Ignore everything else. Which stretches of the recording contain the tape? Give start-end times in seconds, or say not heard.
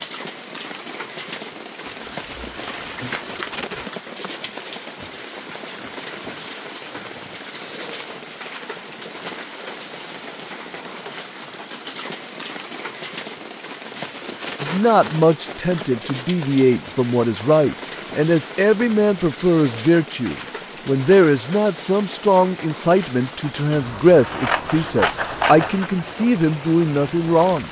3.0-3.9, 13.9-16.2.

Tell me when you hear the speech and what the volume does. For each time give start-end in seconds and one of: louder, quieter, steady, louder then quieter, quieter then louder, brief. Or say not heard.
14.6-27.6 steady.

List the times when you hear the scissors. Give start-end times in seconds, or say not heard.
1.9-3.8, 24.2-25.9.